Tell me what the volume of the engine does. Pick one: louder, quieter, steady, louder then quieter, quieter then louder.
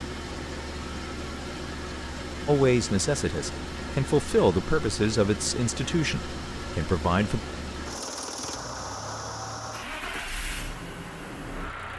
steady.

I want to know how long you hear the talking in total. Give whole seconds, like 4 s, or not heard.
5 s.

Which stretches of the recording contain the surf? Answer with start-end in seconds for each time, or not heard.
not heard.